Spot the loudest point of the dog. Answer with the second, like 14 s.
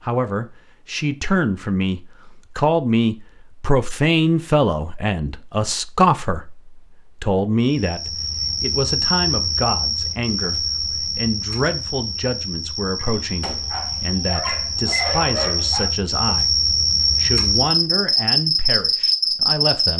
15 s.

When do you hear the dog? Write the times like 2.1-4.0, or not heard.
12.9-15.9.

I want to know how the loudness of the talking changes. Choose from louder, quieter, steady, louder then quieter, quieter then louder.
quieter.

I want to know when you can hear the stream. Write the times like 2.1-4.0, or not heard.
not heard.